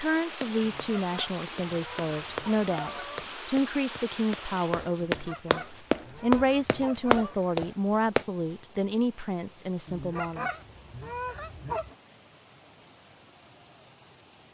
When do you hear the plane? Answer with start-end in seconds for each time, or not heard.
not heard.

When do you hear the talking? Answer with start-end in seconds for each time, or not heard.
0.0-10.5.